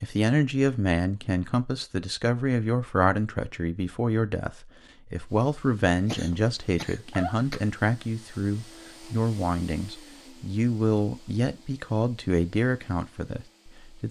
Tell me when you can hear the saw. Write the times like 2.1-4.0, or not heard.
not heard.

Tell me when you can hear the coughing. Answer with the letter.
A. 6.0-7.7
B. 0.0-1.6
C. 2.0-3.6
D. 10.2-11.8
A.